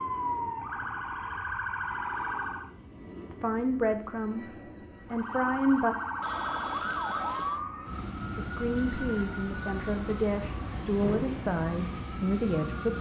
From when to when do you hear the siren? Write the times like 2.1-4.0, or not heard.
0.0-2.7, 5.1-12.9.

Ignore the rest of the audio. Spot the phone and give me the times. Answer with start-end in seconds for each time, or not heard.
6.2-7.7.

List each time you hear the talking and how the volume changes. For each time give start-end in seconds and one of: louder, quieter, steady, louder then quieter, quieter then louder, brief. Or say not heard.
3.3-6.0 brief
8.3-12.9 steady.